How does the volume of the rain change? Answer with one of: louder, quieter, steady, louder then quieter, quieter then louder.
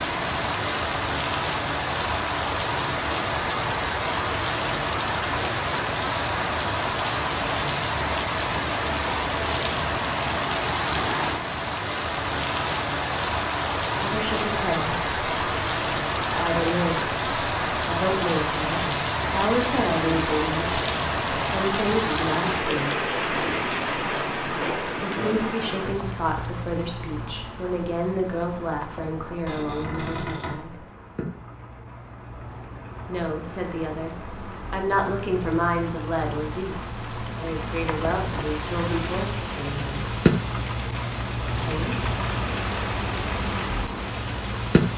quieter then louder.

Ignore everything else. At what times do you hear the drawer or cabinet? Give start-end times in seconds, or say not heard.
29.4-30.6.